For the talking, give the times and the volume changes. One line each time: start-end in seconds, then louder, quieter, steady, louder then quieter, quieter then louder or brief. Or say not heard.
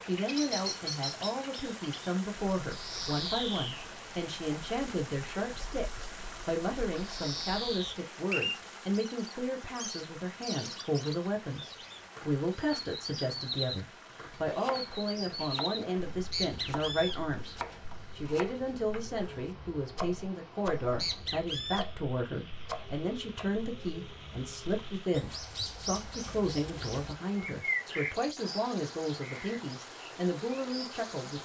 0.0-17.6 steady
18.1-31.4 steady.